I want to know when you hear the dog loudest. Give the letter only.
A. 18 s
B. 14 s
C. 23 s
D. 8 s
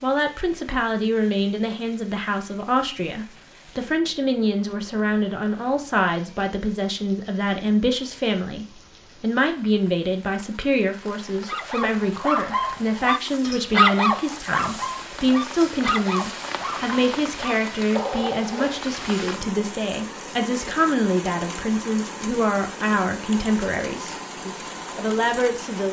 B.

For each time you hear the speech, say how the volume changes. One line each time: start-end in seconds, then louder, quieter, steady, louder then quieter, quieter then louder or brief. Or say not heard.
0.0-25.8 steady.